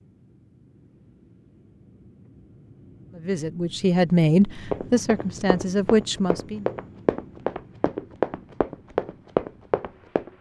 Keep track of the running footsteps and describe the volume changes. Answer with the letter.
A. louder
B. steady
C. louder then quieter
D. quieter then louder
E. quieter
A.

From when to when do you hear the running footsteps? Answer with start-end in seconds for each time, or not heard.
4.7-10.3.